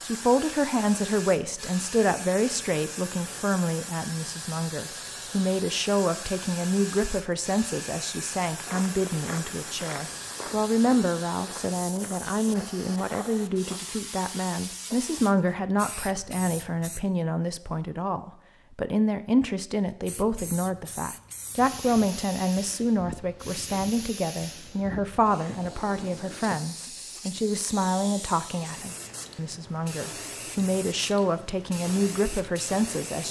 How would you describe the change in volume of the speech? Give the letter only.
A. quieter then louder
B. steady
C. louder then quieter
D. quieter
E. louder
B.